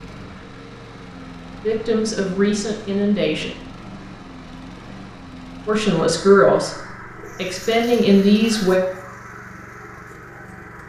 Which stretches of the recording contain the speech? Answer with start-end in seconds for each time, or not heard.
1.6-3.5, 5.7-8.8.